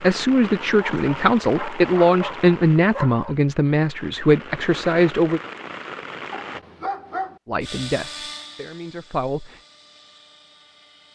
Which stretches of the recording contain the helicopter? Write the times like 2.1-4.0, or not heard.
7.6-11.1.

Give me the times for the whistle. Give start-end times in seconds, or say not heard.
not heard.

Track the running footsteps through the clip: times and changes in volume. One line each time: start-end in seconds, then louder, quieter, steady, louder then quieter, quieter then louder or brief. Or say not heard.
not heard.